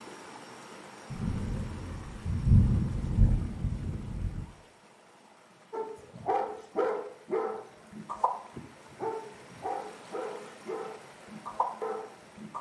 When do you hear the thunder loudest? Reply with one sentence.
The volume of the thunder peaks at 3 seconds.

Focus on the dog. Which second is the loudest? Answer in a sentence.
The volume of the dog peaks at 7 seconds.